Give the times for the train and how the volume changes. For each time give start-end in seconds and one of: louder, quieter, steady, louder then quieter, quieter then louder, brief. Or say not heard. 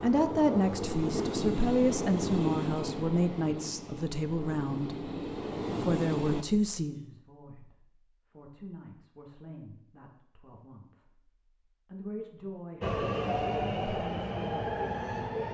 0.0-6.5 quieter then louder
12.8-15.5 brief.